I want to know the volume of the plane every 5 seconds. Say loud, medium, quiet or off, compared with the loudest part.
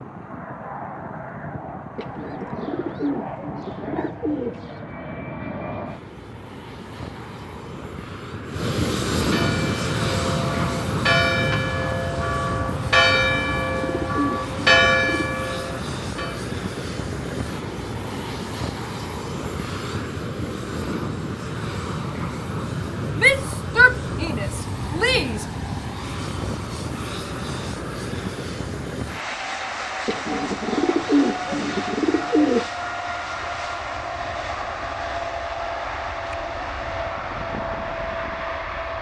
medium, loud, loud, loud, loud, loud, loud, loud.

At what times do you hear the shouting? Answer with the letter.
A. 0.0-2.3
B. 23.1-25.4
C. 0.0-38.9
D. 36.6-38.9
B.